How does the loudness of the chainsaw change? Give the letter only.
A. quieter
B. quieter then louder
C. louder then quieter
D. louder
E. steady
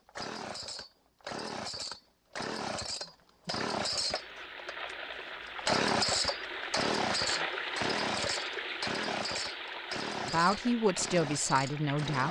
C.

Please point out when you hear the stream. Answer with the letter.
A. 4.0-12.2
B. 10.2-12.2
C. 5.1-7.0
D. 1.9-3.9
A.